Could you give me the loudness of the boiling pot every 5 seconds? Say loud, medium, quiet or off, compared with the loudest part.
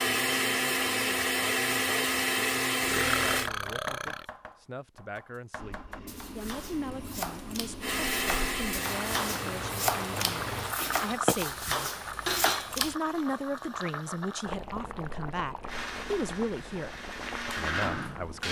off, medium, loud, medium.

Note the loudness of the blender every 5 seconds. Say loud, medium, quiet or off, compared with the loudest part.
loud, medium, off, medium.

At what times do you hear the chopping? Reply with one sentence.
The chopping can be heard from 3.2 to 12.9 s.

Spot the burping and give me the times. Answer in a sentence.
You can hear the burping from 2.8 to 4.2 s and from 10.8 to 11.3 s.